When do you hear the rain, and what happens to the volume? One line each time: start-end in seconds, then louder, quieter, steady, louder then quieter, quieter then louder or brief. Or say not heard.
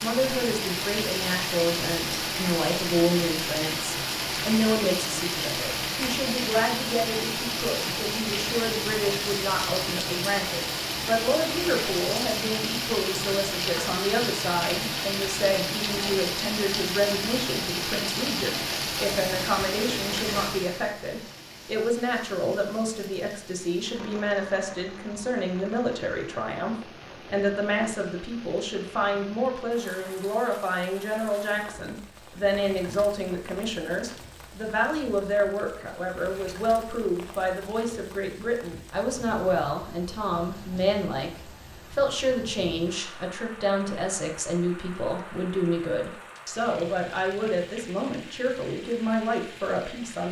0.0-50.2 quieter.